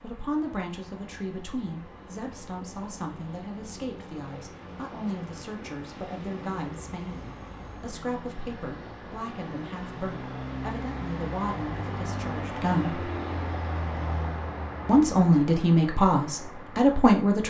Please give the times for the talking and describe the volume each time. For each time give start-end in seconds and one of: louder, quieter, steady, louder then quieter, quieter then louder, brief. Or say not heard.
0.0-13.1 steady
14.8-17.4 brief.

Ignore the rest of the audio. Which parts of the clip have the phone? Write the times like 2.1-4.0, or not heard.
not heard.